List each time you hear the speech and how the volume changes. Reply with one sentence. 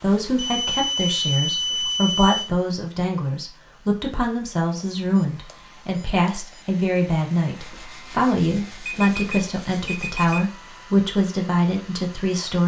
You can hear the speech from 0.0 to 12.6 s, at a steady volume.